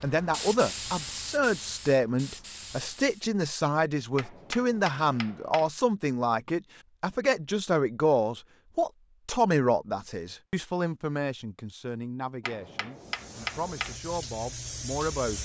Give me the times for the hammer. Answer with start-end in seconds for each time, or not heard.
4.2-5.7, 12.4-13.9.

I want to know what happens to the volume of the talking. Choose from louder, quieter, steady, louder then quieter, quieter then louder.
quieter.